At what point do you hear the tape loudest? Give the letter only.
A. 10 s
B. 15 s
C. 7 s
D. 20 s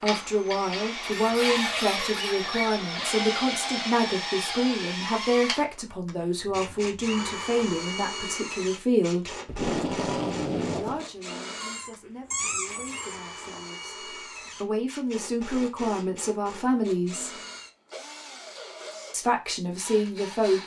A.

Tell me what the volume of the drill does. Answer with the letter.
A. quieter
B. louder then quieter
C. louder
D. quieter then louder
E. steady
A.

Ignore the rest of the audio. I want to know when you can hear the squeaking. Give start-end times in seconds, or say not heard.
1.0-2.7, 11.6-13.2.